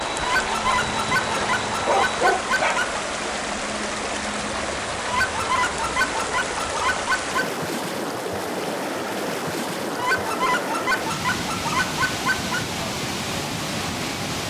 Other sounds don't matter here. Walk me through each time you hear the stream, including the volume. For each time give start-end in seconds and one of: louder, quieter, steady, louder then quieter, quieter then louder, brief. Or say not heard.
0.0-14.4 steady.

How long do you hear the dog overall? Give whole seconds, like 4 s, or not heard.
2 s.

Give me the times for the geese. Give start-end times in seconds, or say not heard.
0.2-3.0, 5.0-7.5, 9.9-12.7.